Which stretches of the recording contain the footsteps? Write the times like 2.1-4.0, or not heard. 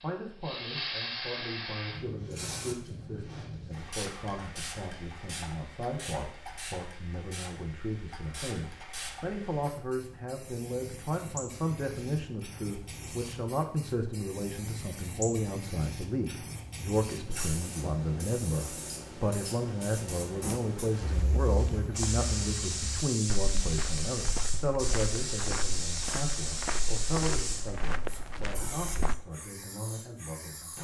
20.4-29.1.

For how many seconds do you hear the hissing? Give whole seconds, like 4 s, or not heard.
31 s.